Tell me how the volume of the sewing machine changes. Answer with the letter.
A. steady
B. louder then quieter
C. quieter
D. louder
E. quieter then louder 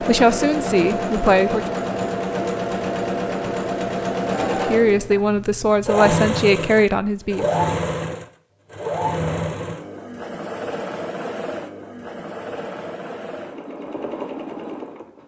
C.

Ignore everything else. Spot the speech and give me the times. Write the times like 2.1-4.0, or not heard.
0.0-1.8, 4.7-7.5.